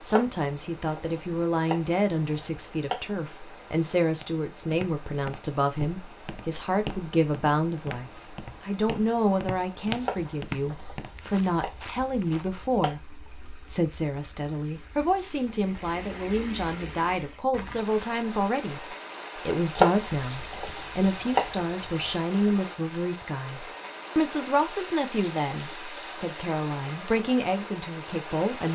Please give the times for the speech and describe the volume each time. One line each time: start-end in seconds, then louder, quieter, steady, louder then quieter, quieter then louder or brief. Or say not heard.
0.0-28.7 steady.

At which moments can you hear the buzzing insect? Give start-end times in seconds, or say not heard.
not heard.